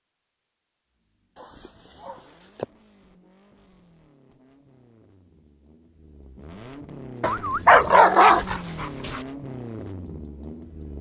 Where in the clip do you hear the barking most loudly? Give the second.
8 s.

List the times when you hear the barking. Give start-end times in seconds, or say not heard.
1.4-2.6, 7.2-9.2.